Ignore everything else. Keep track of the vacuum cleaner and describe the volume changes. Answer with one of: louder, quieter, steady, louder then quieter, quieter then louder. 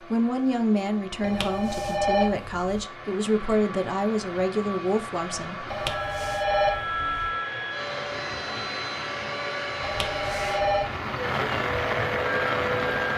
louder.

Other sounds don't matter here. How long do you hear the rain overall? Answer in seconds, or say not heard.
10 s.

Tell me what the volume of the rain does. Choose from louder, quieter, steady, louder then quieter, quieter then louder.
louder.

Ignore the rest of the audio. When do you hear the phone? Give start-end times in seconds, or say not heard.
1.2-2.9, 5.7-7.3, 9.8-10.9.